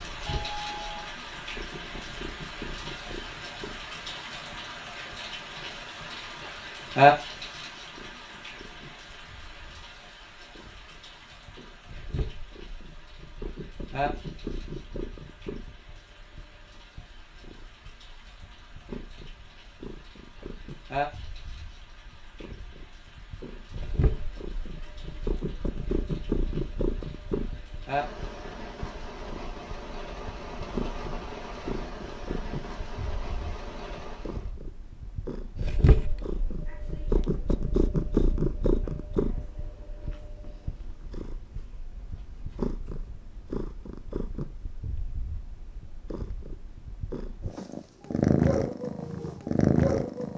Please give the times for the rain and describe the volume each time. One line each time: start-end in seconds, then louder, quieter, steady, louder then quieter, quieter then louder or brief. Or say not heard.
0.0-34.5 quieter then louder.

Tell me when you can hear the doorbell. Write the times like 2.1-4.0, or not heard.
0.2-1.1.